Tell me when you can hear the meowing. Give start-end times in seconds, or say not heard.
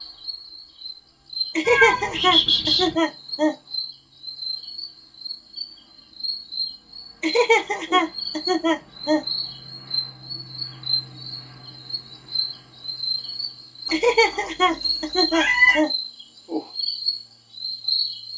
1.6-3.0, 13.8-15.8.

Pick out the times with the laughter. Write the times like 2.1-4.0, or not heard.
1.6-3.5, 7.2-9.2, 13.9-15.9.